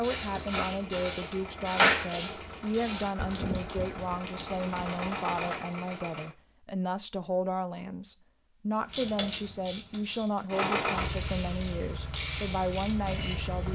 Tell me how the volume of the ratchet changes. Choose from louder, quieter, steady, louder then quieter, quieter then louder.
quieter.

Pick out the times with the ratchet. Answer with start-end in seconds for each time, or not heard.
0.0-6.0, 8.8-13.7.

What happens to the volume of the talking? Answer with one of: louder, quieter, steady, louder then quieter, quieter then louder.
steady.